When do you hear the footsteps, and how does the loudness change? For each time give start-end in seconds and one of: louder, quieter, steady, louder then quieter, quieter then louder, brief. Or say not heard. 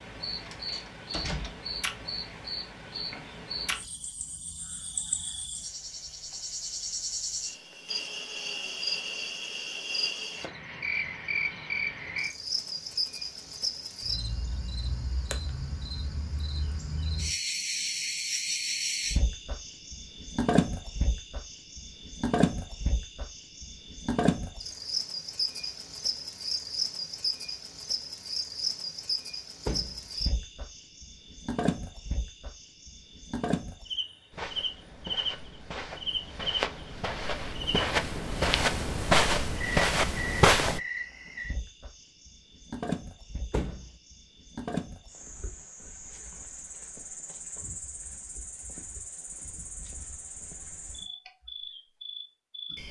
34.3-40.8 louder.